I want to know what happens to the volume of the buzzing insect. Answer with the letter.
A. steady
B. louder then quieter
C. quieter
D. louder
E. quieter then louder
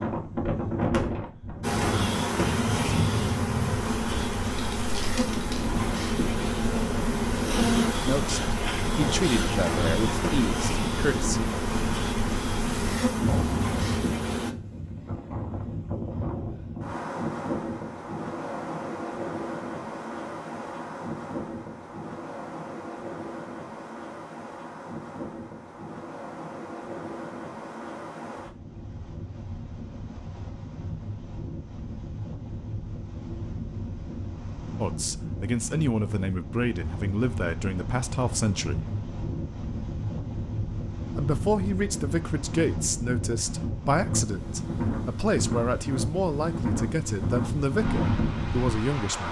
A.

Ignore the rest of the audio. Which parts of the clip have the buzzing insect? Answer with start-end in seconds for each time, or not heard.
1.6-14.6.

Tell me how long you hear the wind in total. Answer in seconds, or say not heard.
49 s.